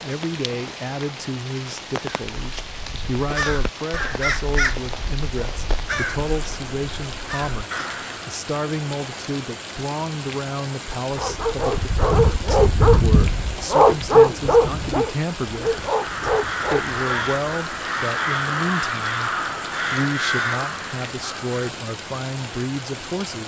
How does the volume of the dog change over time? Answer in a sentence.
The loudness of the dog goes up, then down.